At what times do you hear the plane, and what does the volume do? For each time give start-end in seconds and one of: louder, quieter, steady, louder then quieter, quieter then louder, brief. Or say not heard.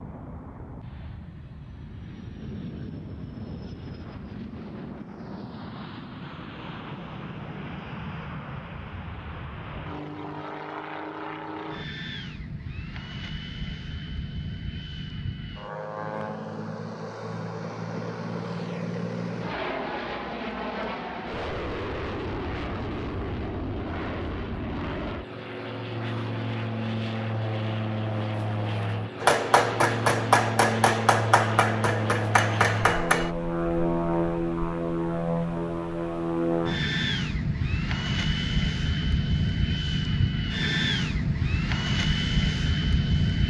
0.0-43.4 louder.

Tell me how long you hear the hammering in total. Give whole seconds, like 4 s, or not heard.
4 s.